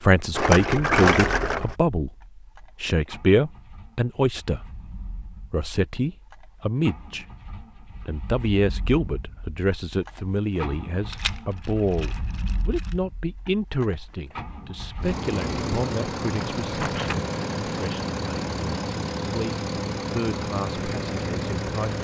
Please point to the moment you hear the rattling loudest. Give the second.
1 s.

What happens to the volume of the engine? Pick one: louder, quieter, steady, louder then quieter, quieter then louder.
louder.